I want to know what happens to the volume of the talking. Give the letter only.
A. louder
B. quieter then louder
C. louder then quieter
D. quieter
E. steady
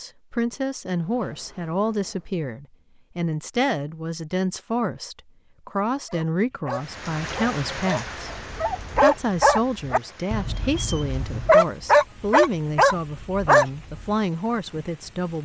E.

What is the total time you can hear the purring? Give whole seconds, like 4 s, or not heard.
not heard.